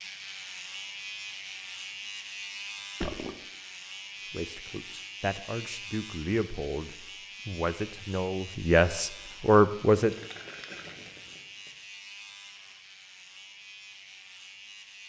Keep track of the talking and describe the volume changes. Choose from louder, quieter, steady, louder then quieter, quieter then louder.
louder.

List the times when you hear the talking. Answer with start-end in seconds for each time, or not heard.
4.3-10.2.